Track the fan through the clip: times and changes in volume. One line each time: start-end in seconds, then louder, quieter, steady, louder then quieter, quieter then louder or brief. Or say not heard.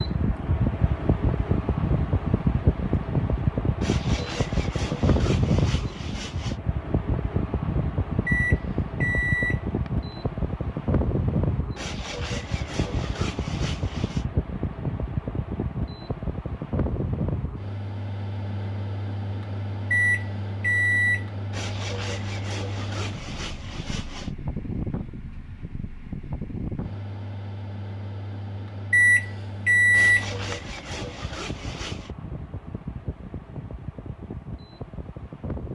0.0-35.7 quieter.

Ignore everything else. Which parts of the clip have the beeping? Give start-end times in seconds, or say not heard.
8.2-9.9, 19.9-21.2, 28.9-30.6.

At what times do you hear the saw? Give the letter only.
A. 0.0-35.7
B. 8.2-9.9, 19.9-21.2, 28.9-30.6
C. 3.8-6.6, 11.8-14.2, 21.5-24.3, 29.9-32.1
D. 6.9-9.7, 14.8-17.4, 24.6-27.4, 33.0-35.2
C.